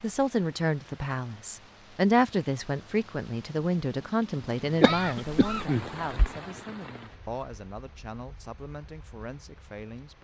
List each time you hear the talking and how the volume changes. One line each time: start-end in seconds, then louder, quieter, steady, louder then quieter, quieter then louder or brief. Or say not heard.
0.0-10.1 quieter.